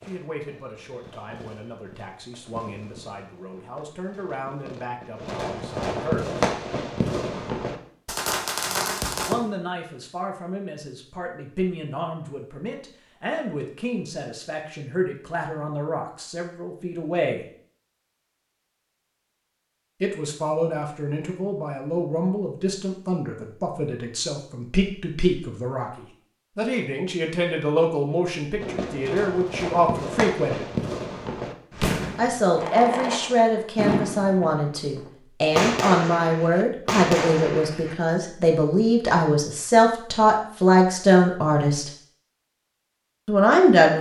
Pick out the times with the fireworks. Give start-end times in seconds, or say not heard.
0.0-9.3, 28.6-38.0.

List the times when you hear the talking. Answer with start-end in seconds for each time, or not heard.
0.1-6.4, 9.0-17.4, 20.0-30.6, 32.1-41.9, 43.2-43.9.